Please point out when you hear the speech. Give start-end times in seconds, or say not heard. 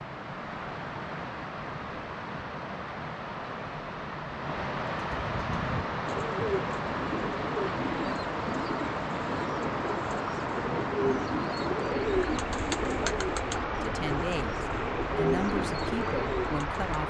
13.8-17.0.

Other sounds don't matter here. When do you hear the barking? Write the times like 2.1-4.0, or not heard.
not heard.